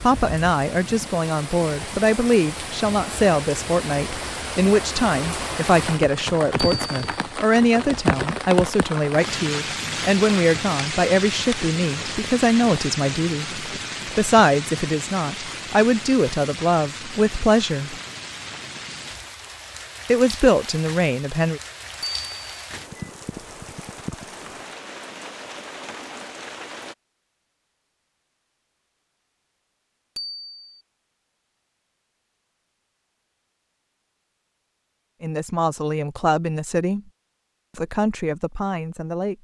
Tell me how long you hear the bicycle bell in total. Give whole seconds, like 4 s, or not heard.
2 s.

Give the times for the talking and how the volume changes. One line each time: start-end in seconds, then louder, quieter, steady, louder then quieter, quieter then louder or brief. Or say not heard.
0.0-17.9 steady
20.1-21.6 brief
35.2-37.0 brief
37.8-39.3 brief.